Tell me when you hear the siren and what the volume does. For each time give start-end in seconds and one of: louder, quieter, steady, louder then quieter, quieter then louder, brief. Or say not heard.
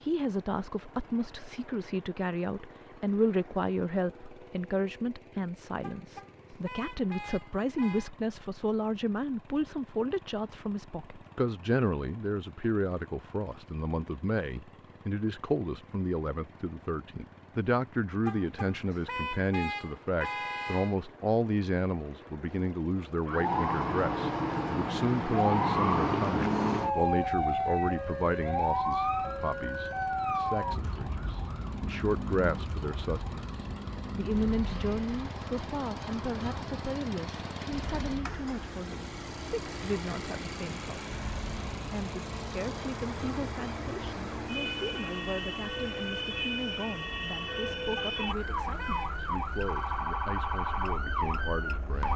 23.2-52.1 quieter then louder.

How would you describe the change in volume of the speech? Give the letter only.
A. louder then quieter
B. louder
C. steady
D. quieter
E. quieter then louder
D.